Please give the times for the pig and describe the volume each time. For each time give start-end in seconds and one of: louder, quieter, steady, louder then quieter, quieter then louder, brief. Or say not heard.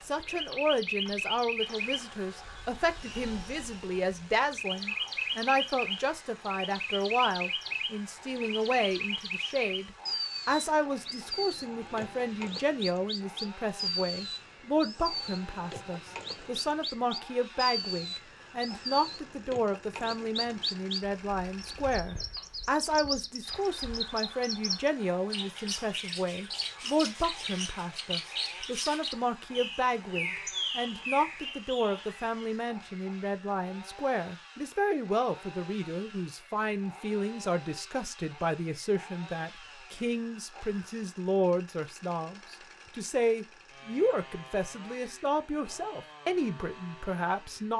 not heard.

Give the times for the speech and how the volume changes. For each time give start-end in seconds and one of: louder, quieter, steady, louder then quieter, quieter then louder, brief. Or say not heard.
0.1-47.7 steady.